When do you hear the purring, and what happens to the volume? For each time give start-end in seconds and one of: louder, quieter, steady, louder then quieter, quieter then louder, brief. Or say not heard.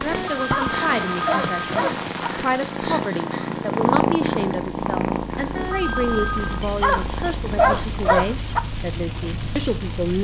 0.0-8.2 louder then quieter.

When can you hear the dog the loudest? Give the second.
8 s.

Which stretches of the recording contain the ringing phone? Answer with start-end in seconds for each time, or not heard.
0.1-1.8, 5.5-6.7.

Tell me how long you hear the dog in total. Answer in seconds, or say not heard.
4 s.